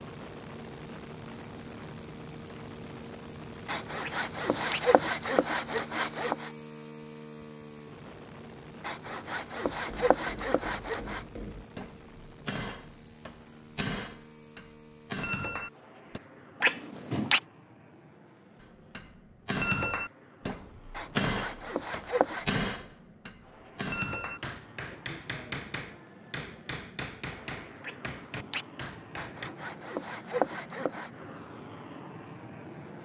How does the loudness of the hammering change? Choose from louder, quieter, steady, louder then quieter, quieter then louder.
louder then quieter.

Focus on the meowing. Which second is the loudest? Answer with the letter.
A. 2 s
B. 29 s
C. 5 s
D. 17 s
D.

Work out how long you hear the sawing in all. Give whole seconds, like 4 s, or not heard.
9 s.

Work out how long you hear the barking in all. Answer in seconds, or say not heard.
not heard.